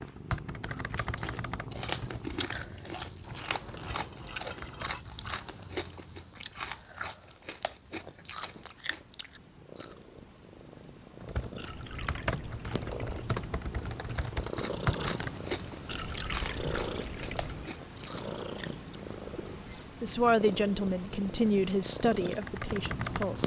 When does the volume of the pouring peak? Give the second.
16 s.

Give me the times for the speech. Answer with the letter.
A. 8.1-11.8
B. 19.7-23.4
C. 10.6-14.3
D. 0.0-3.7
B.